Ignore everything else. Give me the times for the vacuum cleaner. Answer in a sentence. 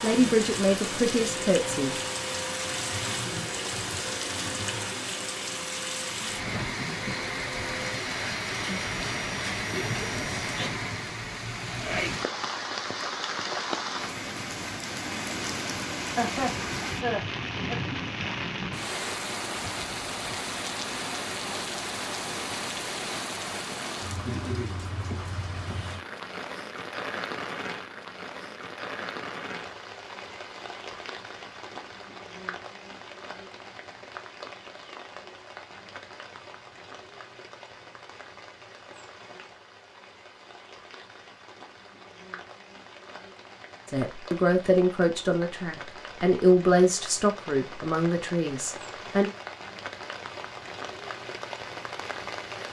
The vacuum cleaner can be heard from 0.0 to 10.7 s.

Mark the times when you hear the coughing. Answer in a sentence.
You can hear the coughing from 16.1 to 17.8 s.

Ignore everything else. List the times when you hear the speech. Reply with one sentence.
You can hear the speech from 0.0 to 1.9 s and from 43.9 to 49.3 s.